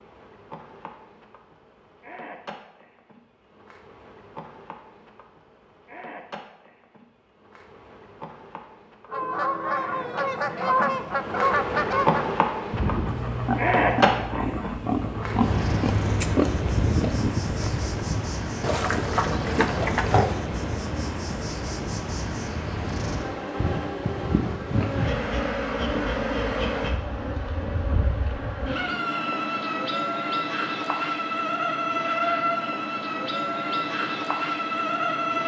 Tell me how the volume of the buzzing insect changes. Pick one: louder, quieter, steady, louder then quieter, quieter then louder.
louder.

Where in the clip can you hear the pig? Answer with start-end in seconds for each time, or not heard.
13.1-20.4.